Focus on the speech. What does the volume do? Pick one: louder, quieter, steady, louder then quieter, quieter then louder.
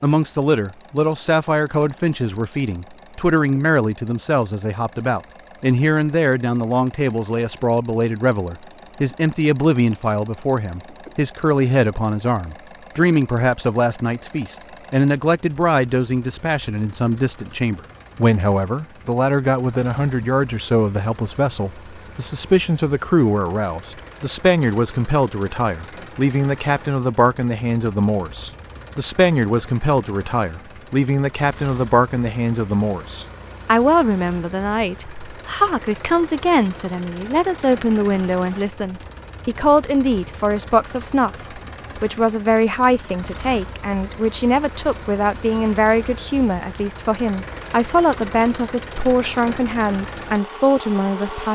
steady.